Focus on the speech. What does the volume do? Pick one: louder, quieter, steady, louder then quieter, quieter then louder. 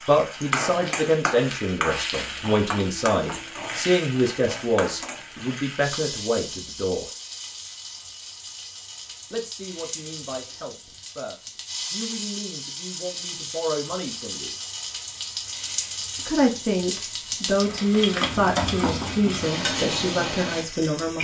quieter then louder.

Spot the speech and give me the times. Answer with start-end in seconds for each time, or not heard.
0.1-7.0, 9.3-14.5, 16.1-21.1.